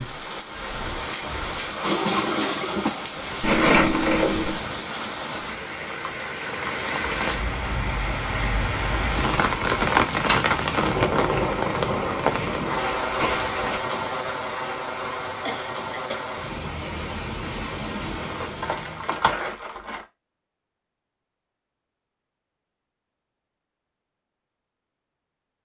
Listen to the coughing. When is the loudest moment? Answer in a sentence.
The volume of the coughing peaks at 2 seconds.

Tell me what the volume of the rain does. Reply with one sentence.
The volume of the rain goes up, then down.